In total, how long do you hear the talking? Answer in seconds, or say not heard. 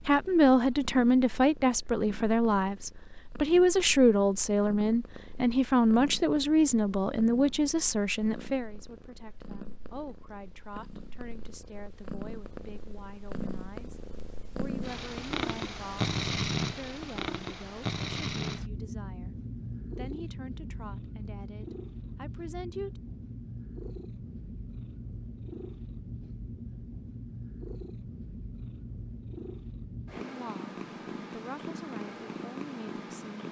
26 s.